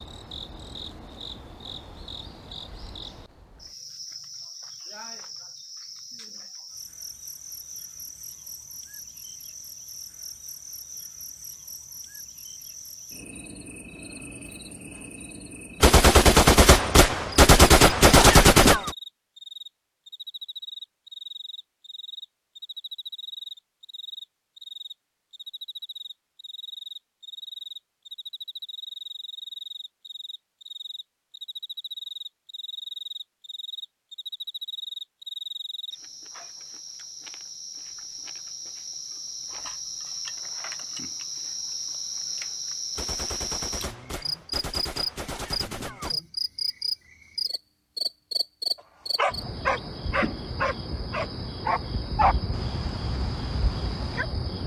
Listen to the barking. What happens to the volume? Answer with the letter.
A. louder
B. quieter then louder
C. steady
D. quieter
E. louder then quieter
D.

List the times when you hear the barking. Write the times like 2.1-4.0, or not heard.
48.8-54.2.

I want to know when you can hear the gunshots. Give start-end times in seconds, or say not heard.
15.8-18.9, 43.0-46.2.